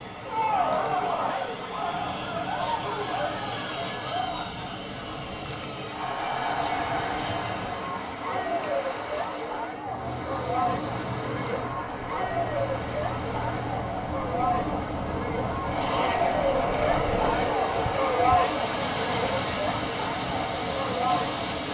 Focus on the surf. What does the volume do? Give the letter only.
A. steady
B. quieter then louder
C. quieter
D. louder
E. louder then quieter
D.